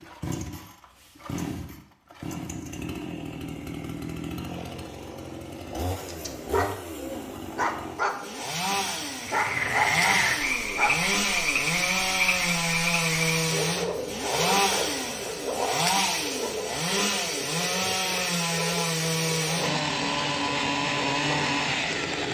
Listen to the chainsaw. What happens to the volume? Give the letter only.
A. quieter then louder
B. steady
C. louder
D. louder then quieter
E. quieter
C.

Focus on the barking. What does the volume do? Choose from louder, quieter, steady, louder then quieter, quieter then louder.
steady.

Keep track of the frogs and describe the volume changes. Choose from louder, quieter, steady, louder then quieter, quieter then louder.
quieter.